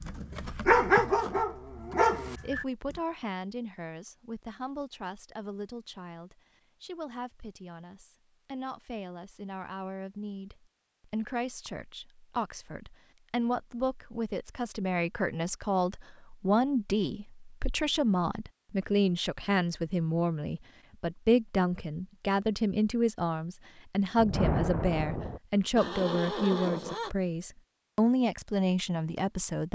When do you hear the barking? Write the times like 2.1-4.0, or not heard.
0.0-3.0.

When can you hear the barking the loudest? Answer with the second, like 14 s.
1 s.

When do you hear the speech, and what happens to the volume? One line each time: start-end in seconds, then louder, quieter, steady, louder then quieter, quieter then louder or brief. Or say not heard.
2.4-29.7 louder.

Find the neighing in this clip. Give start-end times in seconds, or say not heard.
25.8-27.1.